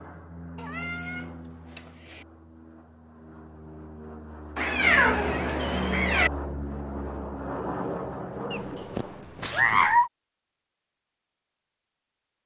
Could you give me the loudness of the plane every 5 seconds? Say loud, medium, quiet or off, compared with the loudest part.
medium, loud, off.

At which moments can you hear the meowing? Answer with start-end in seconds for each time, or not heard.
0.6-2.2, 4.5-6.3, 8.5-10.1.